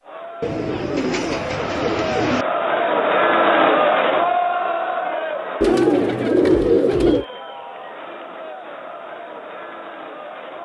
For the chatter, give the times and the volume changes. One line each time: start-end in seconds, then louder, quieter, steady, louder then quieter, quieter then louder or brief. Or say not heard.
0.0-10.6 louder then quieter.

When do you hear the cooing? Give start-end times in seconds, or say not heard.
0.4-2.5, 5.6-7.2.